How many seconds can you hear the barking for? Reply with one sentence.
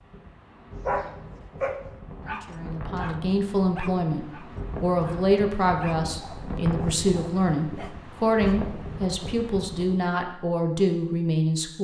You can hear the barking for 8 seconds altogether.